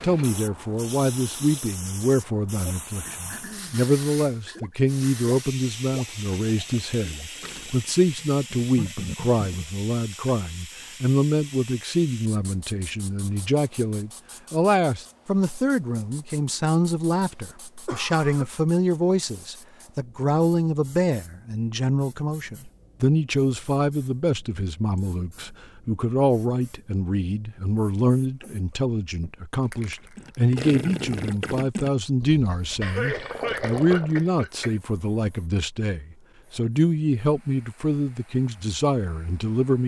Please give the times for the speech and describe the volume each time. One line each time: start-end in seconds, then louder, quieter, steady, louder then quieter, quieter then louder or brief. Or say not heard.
0.0-39.8 steady.